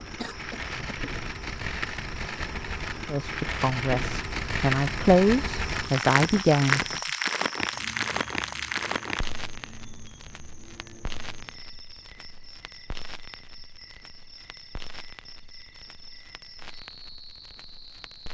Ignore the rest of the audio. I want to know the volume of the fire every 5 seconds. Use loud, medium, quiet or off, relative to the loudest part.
loud, loud, quiet, quiet.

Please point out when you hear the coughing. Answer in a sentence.
The coughing can be heard from 0.2 to 1.0 s.